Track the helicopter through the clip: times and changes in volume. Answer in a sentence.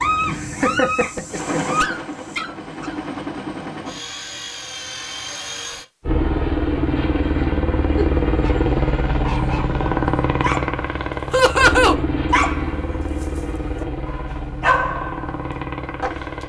The helicopter can be heard from 0.0 to 16.4 s, getting louder then quieter.